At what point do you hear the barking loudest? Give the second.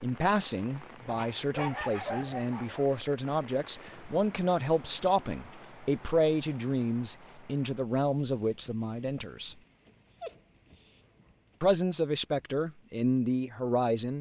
2 s.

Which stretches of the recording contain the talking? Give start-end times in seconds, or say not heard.
0.0-9.6, 11.6-14.1.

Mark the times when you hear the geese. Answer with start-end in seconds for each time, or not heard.
not heard.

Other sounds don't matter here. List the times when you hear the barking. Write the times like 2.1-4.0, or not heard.
1.1-2.9, 10.1-11.5.